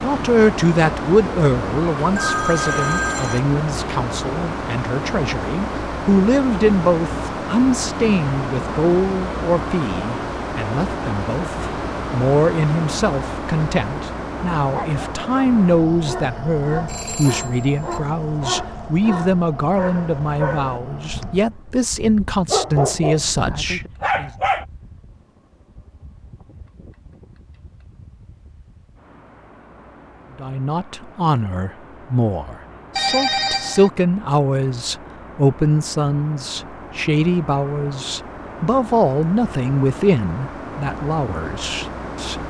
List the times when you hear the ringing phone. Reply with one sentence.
You can hear the ringing phone from 2.1 to 3.4 s, from 16.9 to 18.0 s and from 33.0 to 33.9 s.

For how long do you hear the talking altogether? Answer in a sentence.
The talking can be heard for 36 seconds in total.